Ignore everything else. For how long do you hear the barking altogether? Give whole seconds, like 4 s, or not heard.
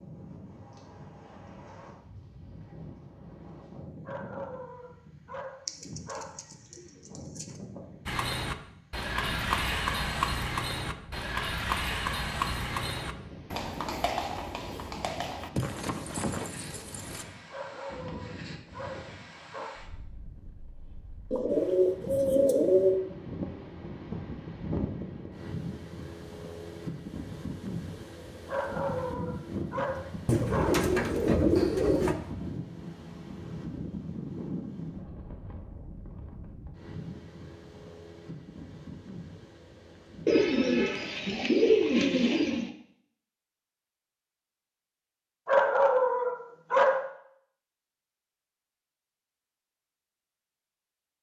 9 s.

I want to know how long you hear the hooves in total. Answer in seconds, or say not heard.
9 s.